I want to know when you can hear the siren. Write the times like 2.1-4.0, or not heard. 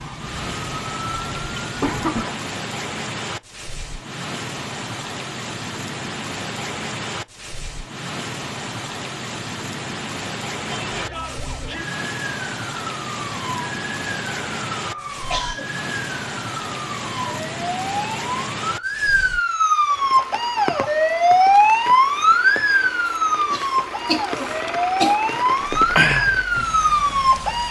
0.0-2.1, 10.7-27.6.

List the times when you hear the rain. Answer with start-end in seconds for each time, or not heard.
0.0-27.6.